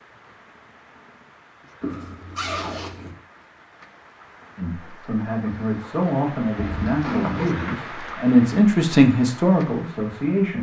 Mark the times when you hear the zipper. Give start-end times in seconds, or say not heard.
1.8-3.1, 6.5-7.5.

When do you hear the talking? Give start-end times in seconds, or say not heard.
4.5-10.5.